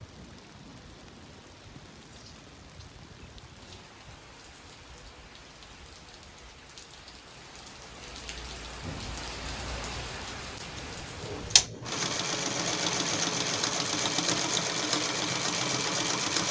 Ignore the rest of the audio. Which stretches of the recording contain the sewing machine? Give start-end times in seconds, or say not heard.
10.7-16.4.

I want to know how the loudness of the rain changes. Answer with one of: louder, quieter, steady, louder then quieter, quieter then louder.
louder.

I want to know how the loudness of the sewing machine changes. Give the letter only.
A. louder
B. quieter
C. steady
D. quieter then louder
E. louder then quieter
C.